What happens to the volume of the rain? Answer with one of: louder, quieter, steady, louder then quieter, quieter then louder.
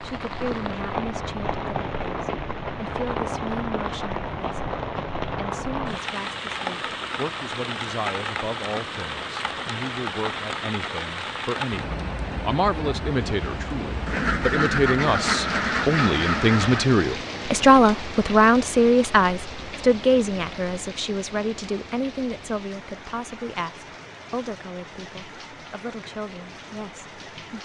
quieter.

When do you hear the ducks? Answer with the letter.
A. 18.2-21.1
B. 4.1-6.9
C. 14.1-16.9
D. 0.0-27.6
C.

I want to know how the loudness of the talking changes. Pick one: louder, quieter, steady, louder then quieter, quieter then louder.
louder then quieter.